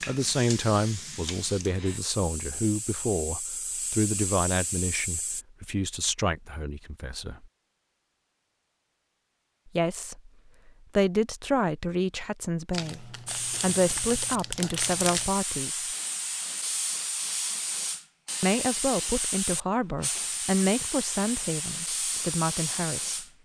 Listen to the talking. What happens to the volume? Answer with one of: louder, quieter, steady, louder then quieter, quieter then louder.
steady.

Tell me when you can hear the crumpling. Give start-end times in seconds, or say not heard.
12.7-15.3.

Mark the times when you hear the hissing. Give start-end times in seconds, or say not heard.
0.0-5.5, 13.2-23.3.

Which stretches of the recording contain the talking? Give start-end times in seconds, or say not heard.
0.1-7.5, 9.7-15.8, 18.4-23.2.